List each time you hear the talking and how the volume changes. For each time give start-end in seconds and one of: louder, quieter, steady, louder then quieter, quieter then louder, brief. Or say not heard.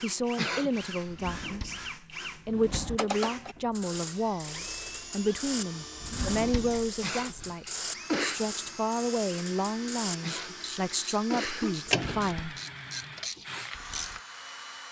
0.0-12.6 steady.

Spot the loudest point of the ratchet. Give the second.
12 s.